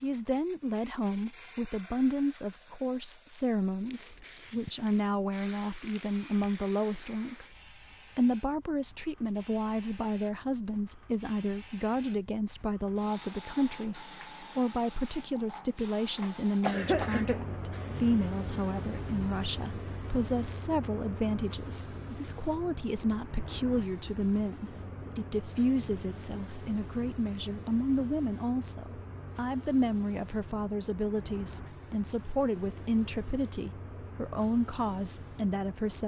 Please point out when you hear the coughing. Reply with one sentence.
You can hear the coughing from 16.6 to 17.4 s.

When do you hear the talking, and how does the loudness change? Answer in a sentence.
The talking can be heard from 0.0 to 7.5 s, at a steady volume; and from 8.2 to 36.0 s, at a steady volume.